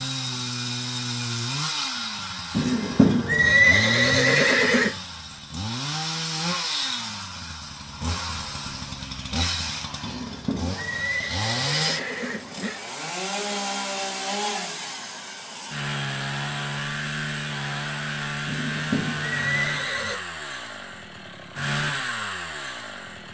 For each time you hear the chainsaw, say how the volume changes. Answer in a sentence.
The chainsaw can be heard from 0.0 to 23.2 s, at a steady volume.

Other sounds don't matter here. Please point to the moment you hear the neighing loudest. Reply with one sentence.
The loudest moment of the neighing is at 4 seconds.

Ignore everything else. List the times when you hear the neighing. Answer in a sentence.
You can hear the neighing from 2.5 to 4.9 s, from 10.0 to 12.8 s and from 18.4 to 20.2 s.